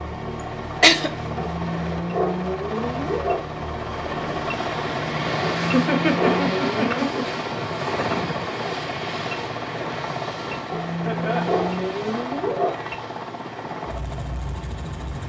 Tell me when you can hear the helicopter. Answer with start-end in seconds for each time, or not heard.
0.0-15.2.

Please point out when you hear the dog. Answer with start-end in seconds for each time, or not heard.
1.4-3.4, 5.4-7.2, 10.7-12.7.